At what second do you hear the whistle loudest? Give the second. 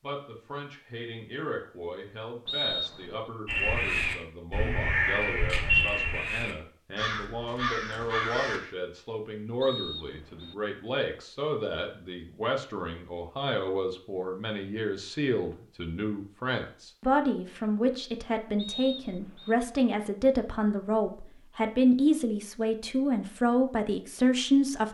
3 s.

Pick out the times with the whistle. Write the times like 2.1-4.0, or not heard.
2.5-3.2, 9.6-10.6, 18.6-19.6.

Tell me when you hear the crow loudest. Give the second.
6 s.